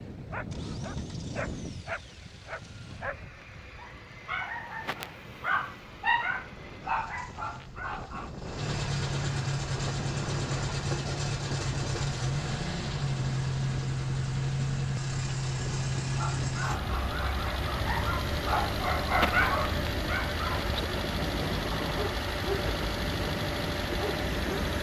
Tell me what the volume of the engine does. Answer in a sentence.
The volume of the engine goes up.